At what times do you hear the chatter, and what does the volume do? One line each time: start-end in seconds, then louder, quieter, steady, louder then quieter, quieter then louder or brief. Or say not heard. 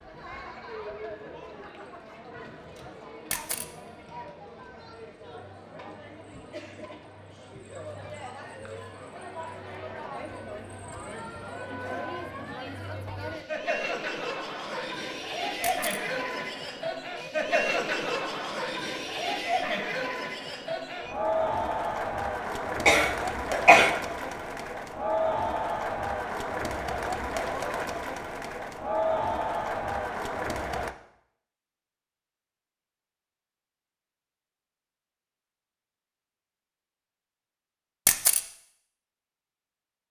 0.0-30.9 louder.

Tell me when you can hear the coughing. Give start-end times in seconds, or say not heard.
22.9-23.9.